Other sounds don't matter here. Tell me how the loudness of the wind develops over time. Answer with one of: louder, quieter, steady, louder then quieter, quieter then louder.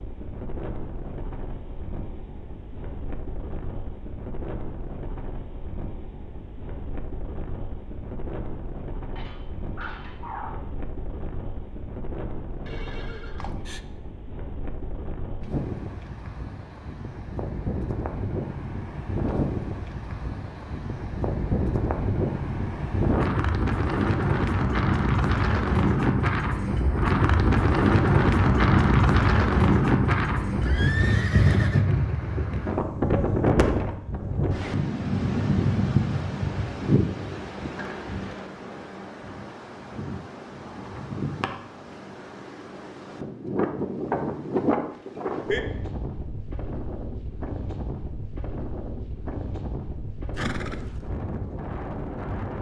louder then quieter.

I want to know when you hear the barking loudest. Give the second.
10 s.